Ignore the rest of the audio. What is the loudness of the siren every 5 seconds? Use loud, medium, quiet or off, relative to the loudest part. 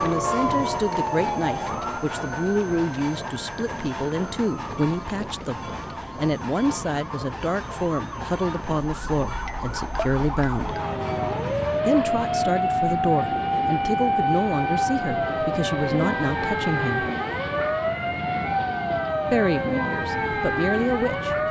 medium, quiet, loud, loud, loud.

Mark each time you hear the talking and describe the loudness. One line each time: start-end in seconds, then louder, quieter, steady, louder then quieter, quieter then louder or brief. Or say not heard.
0.0-10.8 steady
11.8-17.1 steady
19.3-21.4 brief.